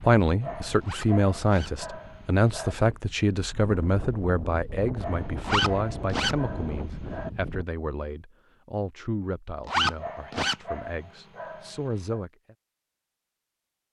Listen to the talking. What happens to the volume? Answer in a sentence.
The loudness of the talking goes down.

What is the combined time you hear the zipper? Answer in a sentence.
You can hear the zipper for 3 seconds altogether.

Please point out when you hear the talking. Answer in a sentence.
The talking can be heard from 0.0 to 12.6 s.